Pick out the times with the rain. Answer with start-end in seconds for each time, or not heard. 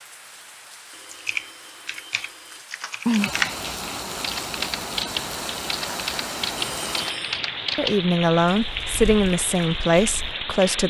0.0-10.8.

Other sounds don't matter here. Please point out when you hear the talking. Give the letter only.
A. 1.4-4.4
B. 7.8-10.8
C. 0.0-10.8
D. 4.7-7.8
B.